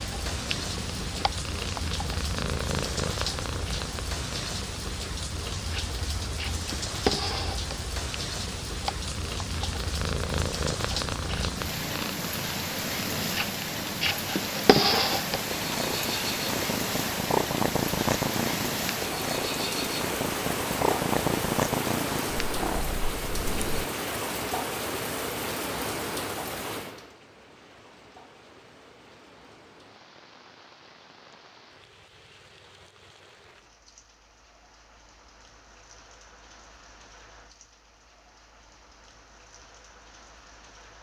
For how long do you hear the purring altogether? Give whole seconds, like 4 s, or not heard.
24 s.